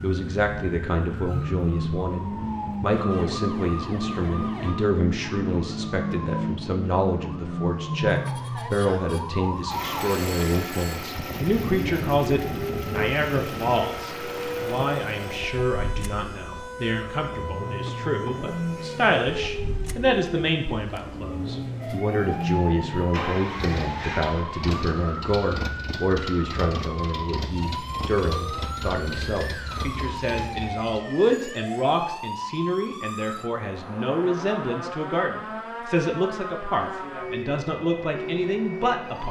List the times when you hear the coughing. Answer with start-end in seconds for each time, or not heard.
not heard.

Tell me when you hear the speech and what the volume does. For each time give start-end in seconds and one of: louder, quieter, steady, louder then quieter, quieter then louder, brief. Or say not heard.
0.0-39.2 steady.